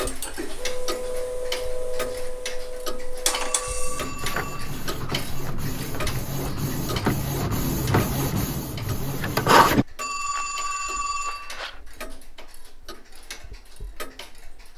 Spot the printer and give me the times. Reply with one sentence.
The printer can be heard from 0.0 to 9.8 s.